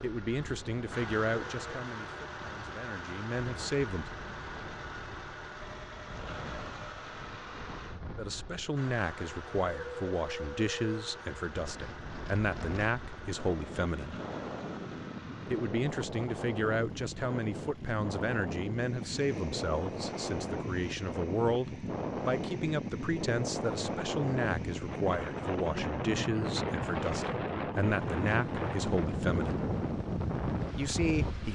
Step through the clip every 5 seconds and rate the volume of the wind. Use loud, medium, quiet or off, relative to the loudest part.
quiet, quiet, medium, medium, loud, loud, loud.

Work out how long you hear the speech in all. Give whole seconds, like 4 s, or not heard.
25 s.